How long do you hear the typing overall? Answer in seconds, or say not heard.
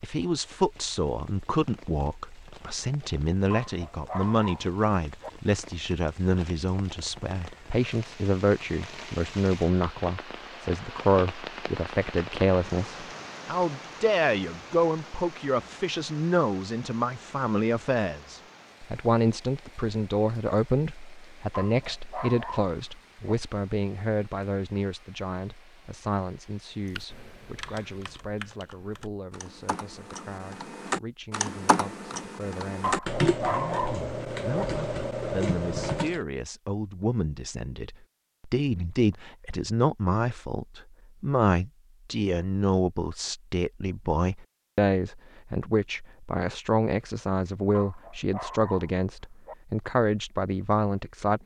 9 s.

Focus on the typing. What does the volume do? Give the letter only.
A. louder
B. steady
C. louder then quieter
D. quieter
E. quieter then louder
A.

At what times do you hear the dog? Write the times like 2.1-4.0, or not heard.
3.5-5.3, 21.5-23.4, 32.8-34.6, 47.7-49.5.